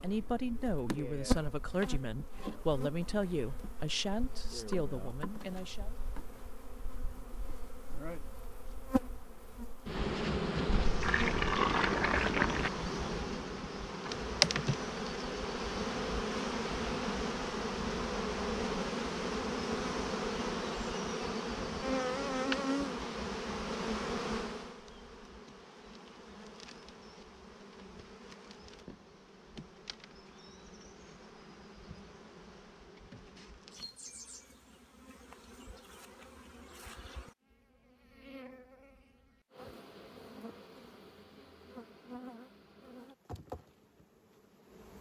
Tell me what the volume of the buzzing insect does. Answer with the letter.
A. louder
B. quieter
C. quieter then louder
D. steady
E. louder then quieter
E.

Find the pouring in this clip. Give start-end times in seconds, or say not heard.
10.7-12.7.